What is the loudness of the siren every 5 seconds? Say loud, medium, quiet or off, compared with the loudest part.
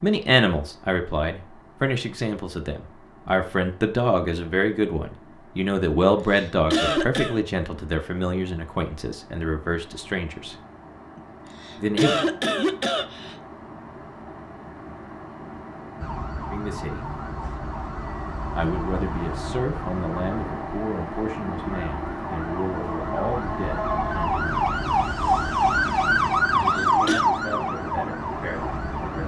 off, off, off, quiet, medium, loud.